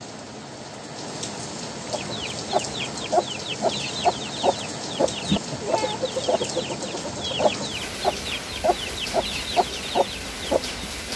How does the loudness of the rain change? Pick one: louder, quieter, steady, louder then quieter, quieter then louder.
steady.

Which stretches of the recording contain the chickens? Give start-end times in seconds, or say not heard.
1.9-10.9.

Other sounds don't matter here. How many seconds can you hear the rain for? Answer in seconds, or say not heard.
11 s.